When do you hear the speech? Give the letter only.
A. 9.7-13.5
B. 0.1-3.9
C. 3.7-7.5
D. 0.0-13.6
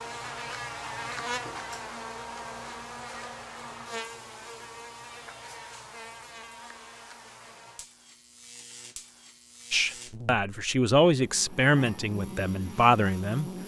A.